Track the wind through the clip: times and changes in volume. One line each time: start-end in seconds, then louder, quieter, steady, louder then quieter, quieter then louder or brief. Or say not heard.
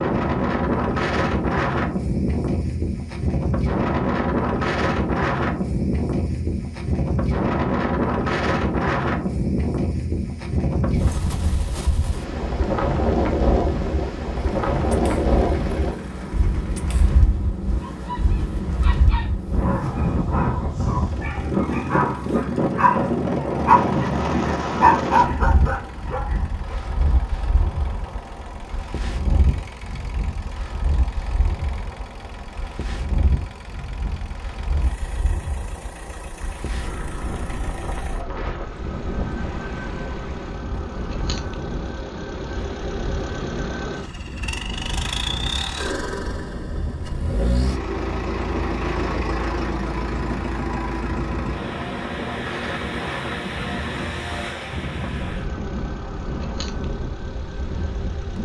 0.0-58.4 quieter.